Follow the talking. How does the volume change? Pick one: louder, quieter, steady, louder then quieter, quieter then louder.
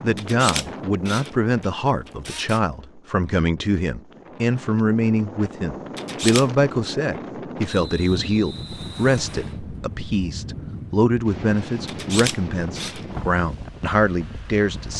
steady.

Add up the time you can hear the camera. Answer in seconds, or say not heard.
4 s.